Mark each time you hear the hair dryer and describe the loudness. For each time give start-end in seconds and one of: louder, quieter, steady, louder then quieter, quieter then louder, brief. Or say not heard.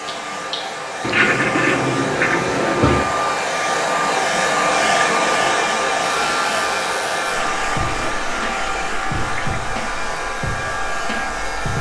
0.0-11.7 louder then quieter.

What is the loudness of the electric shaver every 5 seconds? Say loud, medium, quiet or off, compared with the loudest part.
off, loud, loud.